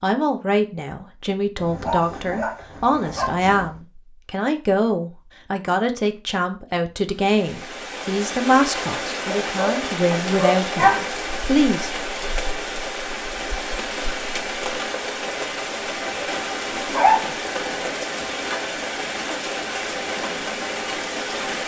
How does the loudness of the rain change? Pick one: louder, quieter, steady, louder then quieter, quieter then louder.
steady.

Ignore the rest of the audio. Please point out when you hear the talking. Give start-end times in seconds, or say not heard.
0.0-11.9.